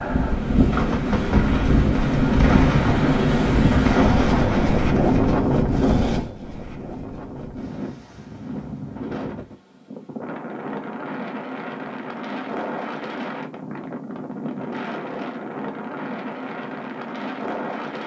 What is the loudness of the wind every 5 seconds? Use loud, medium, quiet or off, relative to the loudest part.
loud, medium, medium, medium.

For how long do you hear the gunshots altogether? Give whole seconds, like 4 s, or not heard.
5 s.